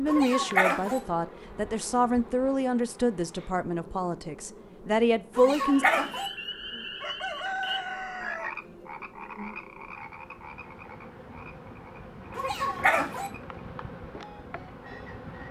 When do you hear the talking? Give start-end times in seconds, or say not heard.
0.0-5.8.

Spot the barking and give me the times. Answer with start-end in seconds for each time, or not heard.
0.1-1.0, 5.3-6.3, 12.3-13.3.